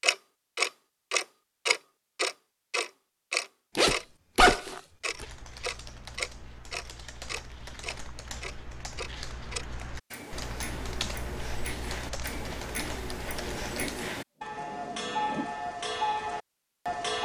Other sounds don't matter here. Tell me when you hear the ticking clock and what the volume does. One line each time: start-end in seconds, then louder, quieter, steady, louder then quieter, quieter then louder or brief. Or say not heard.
0.0-17.1 quieter then louder.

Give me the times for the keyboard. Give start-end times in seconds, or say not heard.
5.0-14.1.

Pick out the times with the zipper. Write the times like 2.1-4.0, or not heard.
3.8-5.2, 13.6-15.6.